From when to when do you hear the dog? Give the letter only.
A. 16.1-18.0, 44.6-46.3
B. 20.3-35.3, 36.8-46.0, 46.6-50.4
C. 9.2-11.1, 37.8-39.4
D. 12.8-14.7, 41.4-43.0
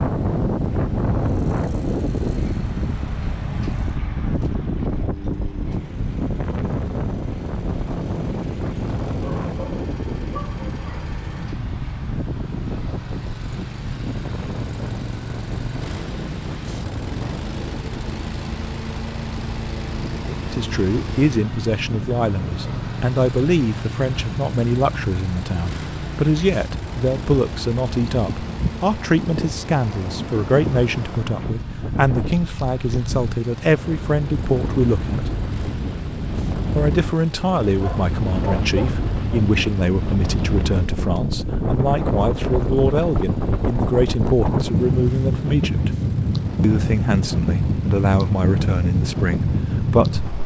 C.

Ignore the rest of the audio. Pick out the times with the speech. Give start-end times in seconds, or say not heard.
20.3-35.3, 36.8-46.0, 46.6-50.4.